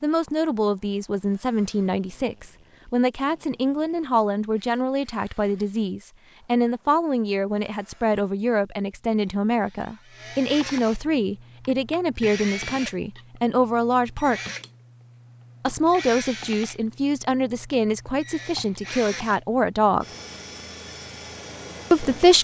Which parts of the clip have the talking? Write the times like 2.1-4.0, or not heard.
0.0-14.4, 15.6-20.1, 21.9-22.3.